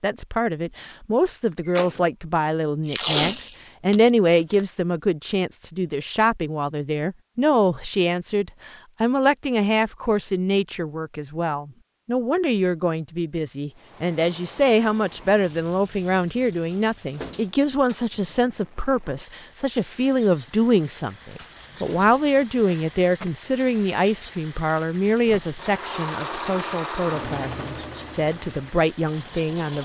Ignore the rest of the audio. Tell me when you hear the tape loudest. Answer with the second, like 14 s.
3 s.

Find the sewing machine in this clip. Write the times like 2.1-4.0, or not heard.
25.2-29.7.